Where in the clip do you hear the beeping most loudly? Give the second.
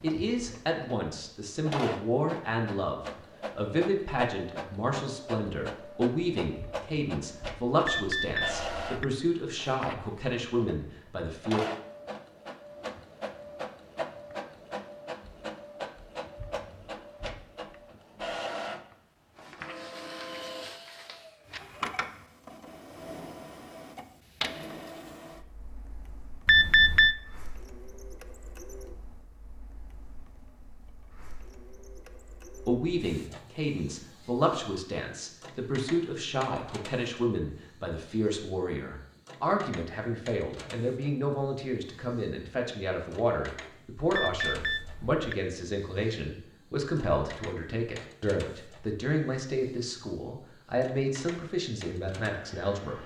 27 s.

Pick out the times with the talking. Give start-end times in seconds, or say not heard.
0.0-11.6, 32.6-53.0.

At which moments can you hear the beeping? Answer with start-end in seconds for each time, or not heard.
7.8-9.1, 26.4-27.1, 44.1-45.4.